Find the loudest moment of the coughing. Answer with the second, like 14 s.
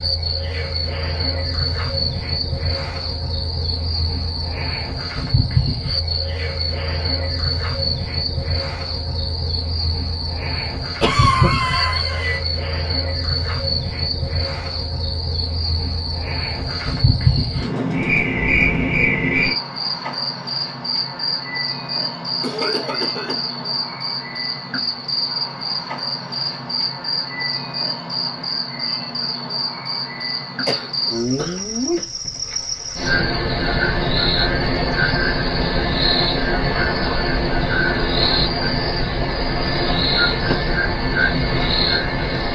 11 s.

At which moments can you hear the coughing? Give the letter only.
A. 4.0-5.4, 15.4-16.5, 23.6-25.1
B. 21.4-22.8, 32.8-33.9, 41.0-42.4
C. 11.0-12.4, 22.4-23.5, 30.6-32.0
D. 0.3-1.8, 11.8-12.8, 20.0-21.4
C.